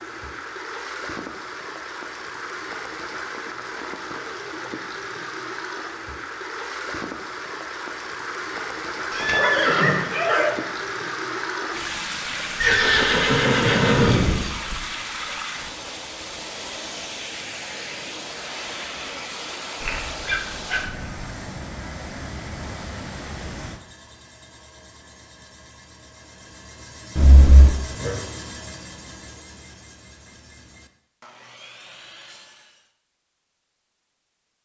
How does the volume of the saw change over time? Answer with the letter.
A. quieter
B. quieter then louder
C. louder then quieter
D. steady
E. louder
C.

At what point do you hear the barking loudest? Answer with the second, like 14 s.
10 s.